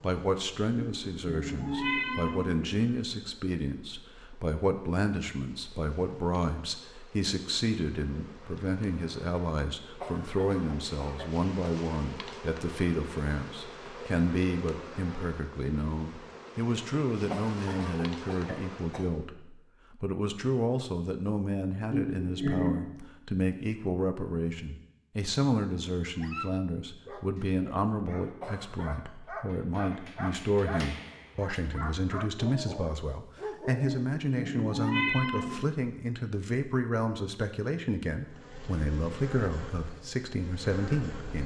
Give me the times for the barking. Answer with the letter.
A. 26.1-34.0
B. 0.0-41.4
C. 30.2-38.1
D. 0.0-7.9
A.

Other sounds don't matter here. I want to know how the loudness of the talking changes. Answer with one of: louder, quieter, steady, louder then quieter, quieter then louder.
steady.